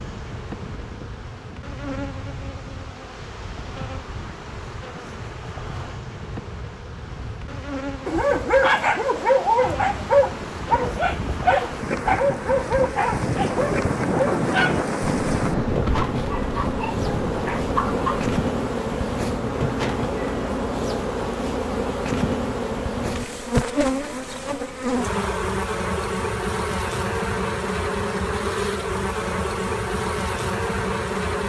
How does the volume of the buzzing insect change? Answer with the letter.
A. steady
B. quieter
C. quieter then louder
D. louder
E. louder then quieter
D.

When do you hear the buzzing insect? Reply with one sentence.
You can hear the buzzing insect from 0.0 to 31.4 s.